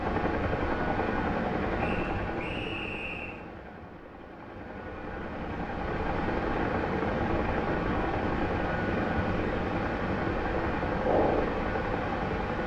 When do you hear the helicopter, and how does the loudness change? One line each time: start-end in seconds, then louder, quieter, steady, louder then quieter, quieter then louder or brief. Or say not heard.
0.0-12.6 quieter then louder.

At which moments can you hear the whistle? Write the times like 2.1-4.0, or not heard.
1.8-3.4.